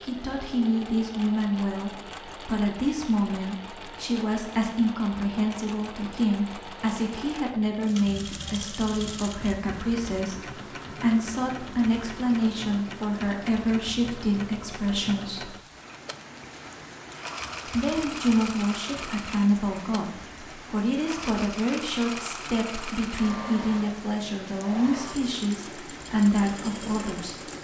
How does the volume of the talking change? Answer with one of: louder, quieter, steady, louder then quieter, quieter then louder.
steady.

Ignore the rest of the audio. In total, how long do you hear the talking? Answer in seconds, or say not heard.
25 s.